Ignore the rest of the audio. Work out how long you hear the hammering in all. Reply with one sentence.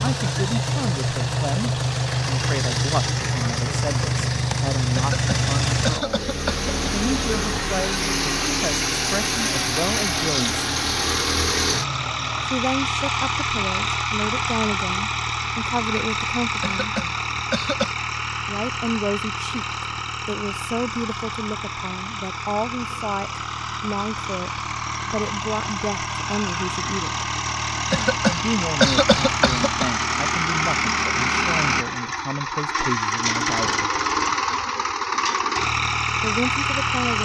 The hammering can't be heard in this clip.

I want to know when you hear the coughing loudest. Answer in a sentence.
The loudest moment of the coughing is at 29 seconds.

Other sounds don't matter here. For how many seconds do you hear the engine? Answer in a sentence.
The engine can be heard for 37 seconds in total.